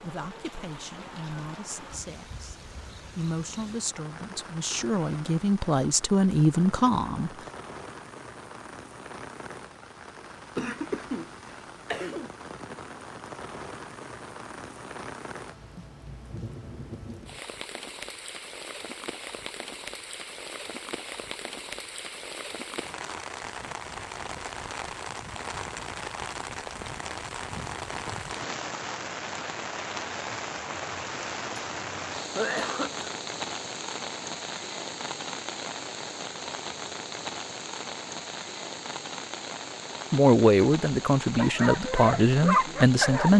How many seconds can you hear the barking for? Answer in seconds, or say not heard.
2 s.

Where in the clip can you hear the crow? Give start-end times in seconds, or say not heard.
not heard.